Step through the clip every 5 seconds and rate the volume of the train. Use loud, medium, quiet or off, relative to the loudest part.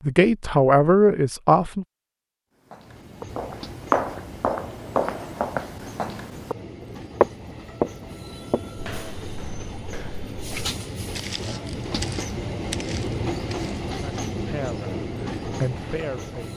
medium, medium, loud, loud.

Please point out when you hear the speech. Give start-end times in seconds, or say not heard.
0.1-1.9, 13.9-14.9, 15.6-16.5.